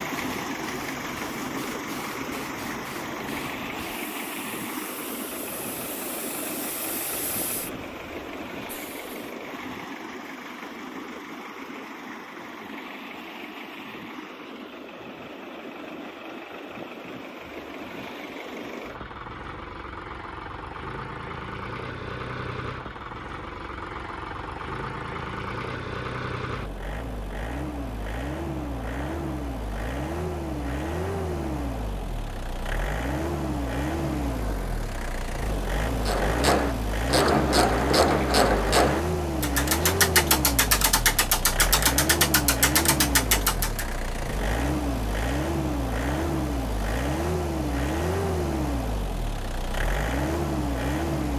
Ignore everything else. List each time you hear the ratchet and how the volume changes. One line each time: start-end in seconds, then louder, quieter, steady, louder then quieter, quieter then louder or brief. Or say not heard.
36.0-43.9 steady.